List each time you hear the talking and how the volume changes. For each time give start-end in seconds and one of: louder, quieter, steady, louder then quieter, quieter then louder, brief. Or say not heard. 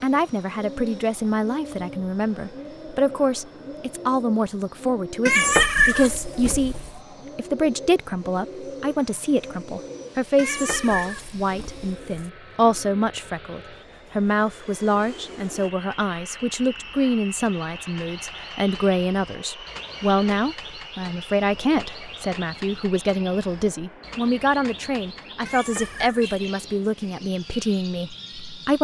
0.0-28.7 steady.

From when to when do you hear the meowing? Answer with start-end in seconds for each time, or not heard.
5.2-6.9, 10.3-12.3, 25.4-26.5.